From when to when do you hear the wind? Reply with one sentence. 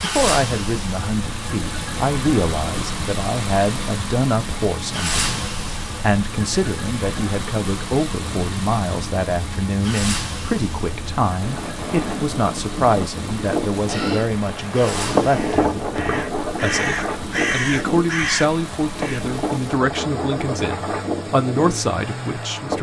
You can hear the wind from 8.2 to 22.7 s.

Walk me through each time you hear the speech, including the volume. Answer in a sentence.
The speech can be heard from 0.0 to 22.7 s, at a steady volume.